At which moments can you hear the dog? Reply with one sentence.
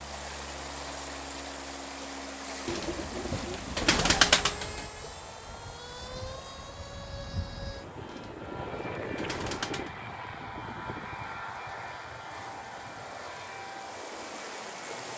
The dog can't be heard in this clip.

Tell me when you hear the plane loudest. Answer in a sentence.
The loudest moment of the plane is at 9 seconds.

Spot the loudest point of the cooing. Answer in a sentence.
The loudest moment of the cooing is at 4 seconds.